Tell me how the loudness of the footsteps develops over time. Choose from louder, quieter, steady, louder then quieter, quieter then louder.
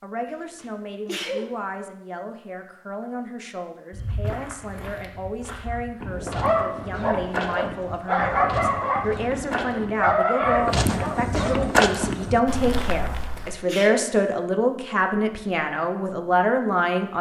louder.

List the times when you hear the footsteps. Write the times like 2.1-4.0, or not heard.
3.9-13.6.